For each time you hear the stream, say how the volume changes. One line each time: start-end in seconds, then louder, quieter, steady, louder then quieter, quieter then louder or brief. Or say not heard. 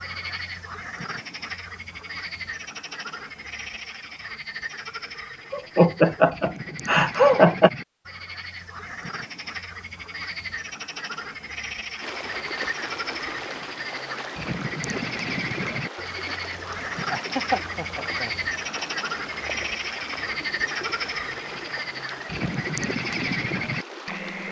11.9-24.4 steady.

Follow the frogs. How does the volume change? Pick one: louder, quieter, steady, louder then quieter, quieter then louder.
louder.